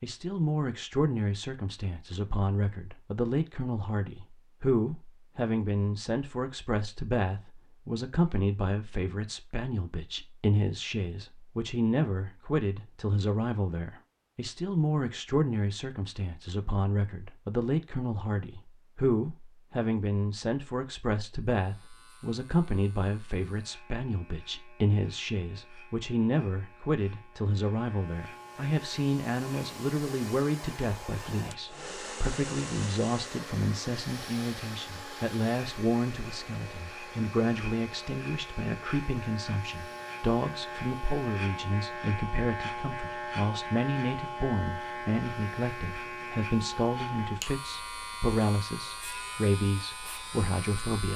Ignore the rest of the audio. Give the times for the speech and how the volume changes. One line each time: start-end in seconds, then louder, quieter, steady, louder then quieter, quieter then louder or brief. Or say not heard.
0.0-51.1 steady.